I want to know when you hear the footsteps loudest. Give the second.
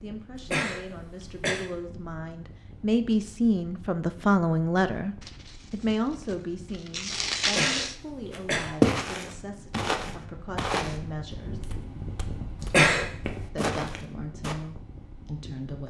9 s.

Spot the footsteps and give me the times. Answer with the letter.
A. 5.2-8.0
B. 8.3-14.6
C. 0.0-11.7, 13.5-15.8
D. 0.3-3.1
B.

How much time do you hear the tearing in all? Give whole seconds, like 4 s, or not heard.
3 s.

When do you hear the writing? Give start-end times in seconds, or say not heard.
not heard.